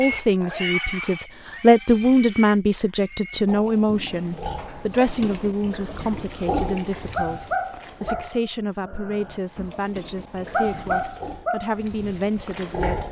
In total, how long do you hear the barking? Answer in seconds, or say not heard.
4 s.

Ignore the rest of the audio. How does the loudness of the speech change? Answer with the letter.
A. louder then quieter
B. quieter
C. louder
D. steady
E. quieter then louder
B.